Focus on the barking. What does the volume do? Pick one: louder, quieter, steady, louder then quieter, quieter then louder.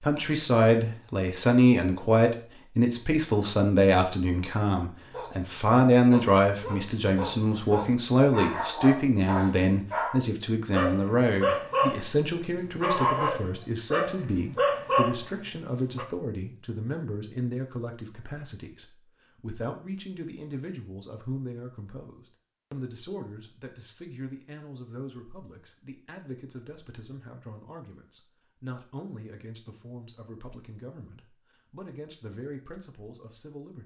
louder.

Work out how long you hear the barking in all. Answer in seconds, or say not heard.
11 s.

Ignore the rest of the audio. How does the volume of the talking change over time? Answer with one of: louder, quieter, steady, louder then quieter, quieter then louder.
quieter.